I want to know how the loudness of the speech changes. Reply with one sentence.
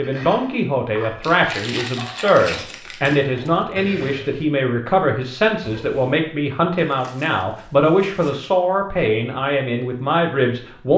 The loudness of the speech stays about the same.